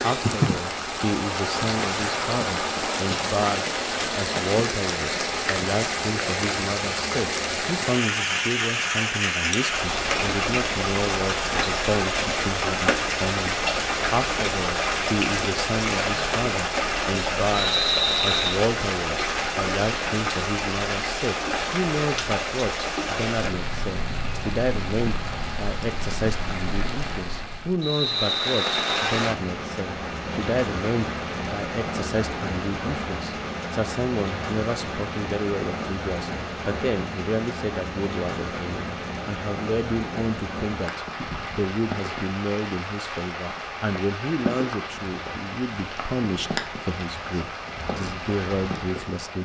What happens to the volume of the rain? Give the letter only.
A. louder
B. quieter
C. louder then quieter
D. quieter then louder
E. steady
B.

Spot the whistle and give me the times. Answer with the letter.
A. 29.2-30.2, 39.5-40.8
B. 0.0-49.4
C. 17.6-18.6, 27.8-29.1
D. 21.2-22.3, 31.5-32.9
C.